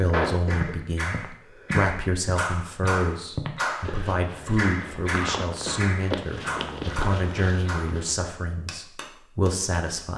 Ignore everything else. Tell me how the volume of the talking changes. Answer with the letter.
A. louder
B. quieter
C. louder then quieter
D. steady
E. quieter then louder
D.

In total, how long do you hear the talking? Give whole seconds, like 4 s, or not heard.
10 s.